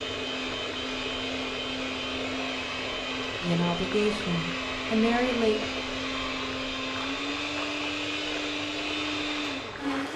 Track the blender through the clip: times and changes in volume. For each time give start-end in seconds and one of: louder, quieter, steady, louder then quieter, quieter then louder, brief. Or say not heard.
0.0-10.1 steady.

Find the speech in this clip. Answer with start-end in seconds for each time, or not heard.
3.4-5.6.